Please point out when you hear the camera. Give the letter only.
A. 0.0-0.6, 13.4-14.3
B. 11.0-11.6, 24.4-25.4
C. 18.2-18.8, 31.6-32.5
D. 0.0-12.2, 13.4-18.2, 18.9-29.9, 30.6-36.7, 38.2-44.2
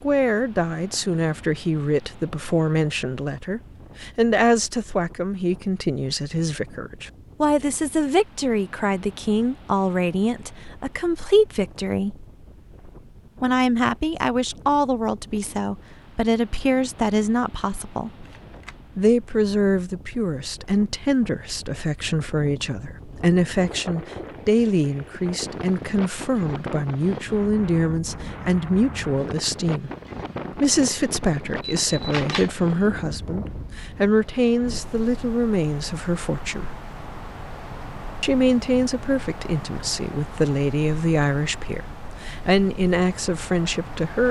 C.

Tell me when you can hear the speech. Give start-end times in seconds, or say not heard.
0.0-12.2, 13.4-18.2, 18.9-29.9, 30.6-36.7, 38.2-44.2.